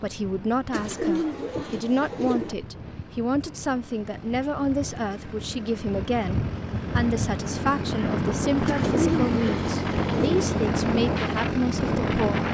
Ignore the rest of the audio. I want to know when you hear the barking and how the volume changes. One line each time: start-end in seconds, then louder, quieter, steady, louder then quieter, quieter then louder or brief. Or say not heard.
not heard.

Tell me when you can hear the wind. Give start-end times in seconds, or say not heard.
0.0-12.4.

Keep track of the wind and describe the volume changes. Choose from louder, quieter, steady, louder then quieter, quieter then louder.
louder.